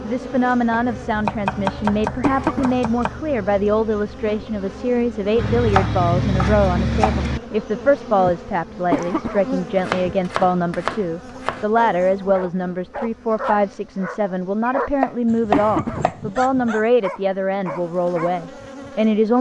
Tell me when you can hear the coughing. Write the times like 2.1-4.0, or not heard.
2.2-2.8, 8.9-9.4, 15.5-16.1.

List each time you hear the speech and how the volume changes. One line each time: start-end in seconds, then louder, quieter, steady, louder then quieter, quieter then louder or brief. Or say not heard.
0.0-19.3 steady.